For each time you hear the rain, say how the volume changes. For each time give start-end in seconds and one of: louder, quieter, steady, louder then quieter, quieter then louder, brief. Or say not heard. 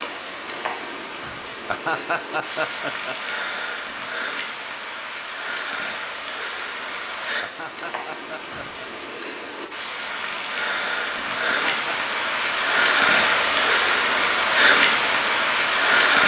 0.0-16.2 louder.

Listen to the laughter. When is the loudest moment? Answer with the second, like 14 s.
2 s.